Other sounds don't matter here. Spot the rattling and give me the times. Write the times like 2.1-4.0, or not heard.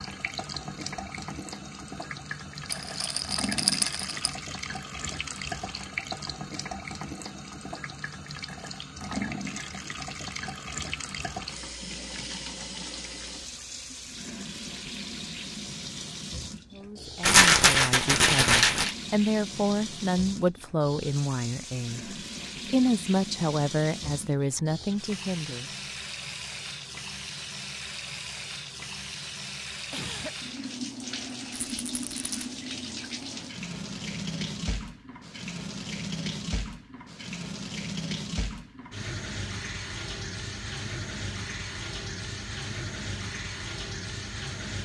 2.7-4.3, 17.2-18.9, 31.6-32.4.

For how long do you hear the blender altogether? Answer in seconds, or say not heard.
not heard.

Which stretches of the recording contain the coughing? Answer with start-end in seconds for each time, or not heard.
29.9-30.4.